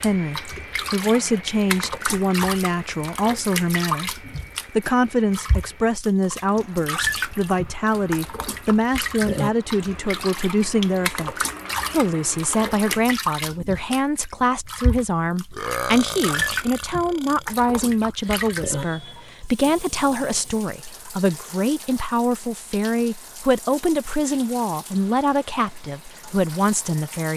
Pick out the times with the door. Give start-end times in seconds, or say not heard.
not heard.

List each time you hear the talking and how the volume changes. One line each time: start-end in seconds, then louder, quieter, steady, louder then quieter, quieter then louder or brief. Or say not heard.
0.0-27.3 steady.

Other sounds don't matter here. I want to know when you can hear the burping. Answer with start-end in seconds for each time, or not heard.
15.5-17.4.